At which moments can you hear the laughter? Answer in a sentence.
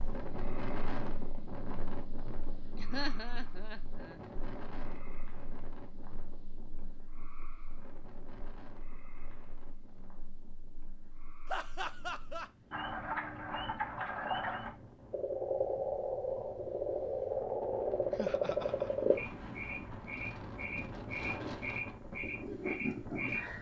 You can hear the laughter from 2.8 to 4.2 s, from 11.4 to 12.5 s and from 18.1 to 19.1 s.